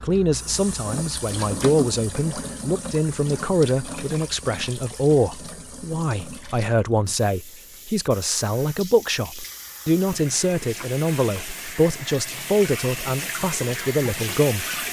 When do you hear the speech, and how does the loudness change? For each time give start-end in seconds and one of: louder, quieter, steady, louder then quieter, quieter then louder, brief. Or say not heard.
0.0-14.7 steady.